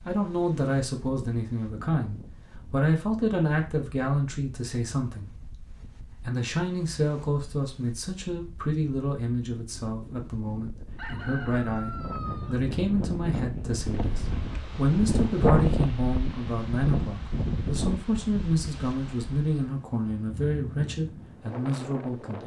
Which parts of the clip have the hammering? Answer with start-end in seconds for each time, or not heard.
not heard.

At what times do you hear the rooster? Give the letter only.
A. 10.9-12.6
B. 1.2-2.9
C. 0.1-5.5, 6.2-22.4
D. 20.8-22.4
A.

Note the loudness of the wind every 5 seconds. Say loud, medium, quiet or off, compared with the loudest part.
quiet, quiet, medium, loud, medium.